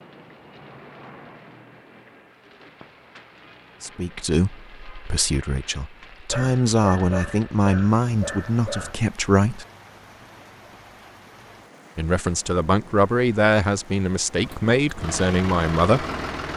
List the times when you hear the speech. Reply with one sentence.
The speech can be heard from 3.8 to 9.7 s and from 11.9 to 16.1 s.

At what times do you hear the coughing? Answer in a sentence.
The coughing can't be heard in this clip.